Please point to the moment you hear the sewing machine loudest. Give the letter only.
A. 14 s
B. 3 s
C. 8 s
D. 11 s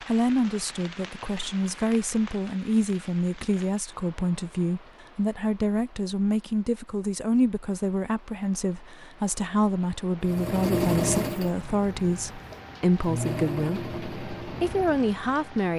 D.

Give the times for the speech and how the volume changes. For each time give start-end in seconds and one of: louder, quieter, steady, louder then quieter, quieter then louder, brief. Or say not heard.
0.1-15.7 steady.